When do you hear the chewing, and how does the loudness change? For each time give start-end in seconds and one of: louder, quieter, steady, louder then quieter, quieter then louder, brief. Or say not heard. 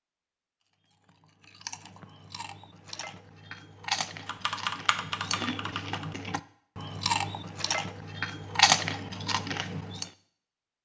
1.1-10.1 louder.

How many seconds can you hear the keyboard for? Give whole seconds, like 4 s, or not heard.
2 s.